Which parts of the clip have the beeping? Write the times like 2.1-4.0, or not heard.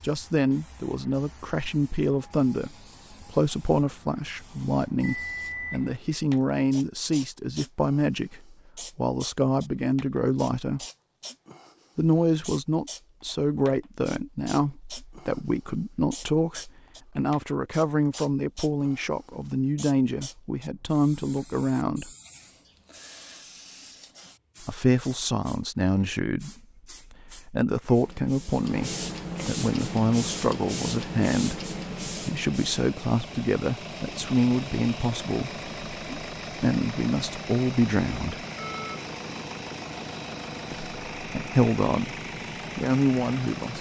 5.0-6.0, 38.5-39.0.